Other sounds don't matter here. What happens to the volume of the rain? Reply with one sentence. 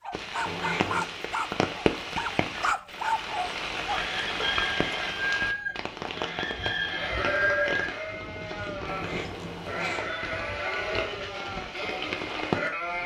The loudness of the rain goes down, then up.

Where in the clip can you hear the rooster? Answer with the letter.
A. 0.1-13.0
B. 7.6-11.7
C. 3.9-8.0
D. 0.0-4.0
C.